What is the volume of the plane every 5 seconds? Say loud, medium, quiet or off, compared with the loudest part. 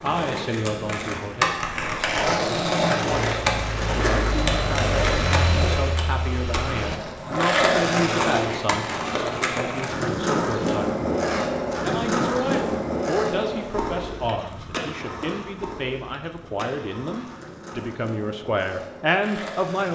loud, loud, off, off.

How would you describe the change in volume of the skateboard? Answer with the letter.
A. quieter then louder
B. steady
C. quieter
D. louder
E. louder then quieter
C.